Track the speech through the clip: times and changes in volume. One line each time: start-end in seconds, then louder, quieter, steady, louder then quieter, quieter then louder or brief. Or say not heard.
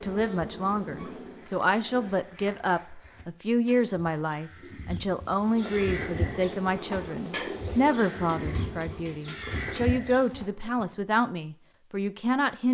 0.0-12.6 steady.